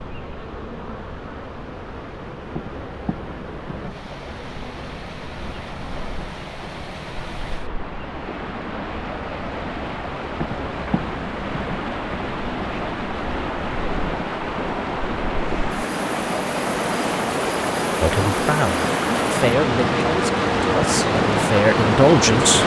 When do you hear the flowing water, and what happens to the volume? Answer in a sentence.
You can hear the flowing water from 0.0 to 22.6 s, getting louder.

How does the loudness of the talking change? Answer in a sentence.
The volume of the talking goes down, then up.